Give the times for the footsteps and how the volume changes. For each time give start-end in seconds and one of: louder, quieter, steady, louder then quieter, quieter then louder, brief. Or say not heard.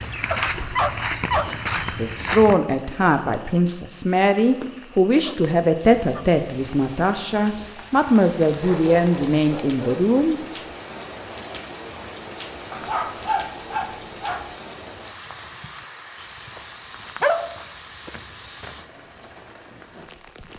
0.0-2.6 brief
12.3-18.9 louder.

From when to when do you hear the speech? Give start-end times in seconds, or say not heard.
1.8-10.4.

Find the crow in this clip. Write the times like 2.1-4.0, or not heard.
not heard.